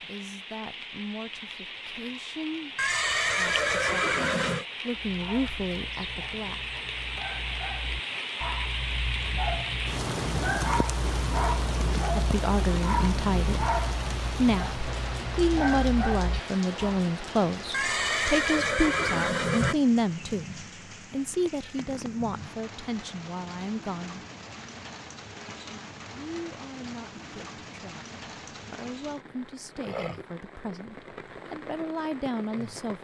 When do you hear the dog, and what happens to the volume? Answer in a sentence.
You can hear the dog from 5.0 to 17.1 s, getting louder.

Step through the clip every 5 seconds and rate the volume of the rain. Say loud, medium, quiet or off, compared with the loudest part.
medium, loud, loud, medium, medium, medium, medium.